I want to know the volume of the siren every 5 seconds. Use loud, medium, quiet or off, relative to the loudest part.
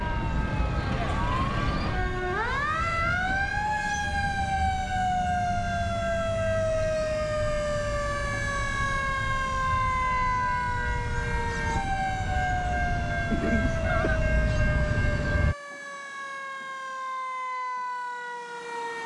loud, loud, loud, medium.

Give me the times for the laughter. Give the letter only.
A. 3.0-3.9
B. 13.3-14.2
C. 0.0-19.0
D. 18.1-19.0
B.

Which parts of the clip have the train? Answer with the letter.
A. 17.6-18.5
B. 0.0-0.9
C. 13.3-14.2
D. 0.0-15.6
D.